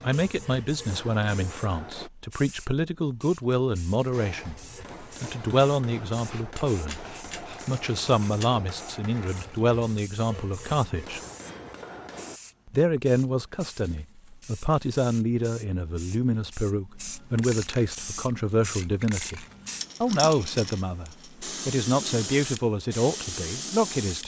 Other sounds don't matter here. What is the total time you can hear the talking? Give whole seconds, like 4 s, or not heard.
23 s.